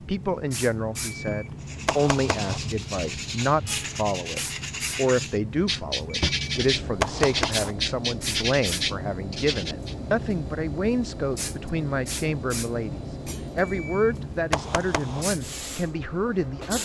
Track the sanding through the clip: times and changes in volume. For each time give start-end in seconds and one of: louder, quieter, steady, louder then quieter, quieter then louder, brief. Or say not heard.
1.6-9.9 louder.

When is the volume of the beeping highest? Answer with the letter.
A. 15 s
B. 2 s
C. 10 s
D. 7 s
D.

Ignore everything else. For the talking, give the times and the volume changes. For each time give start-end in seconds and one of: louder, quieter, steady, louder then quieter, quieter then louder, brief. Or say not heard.
0.1-16.8 steady.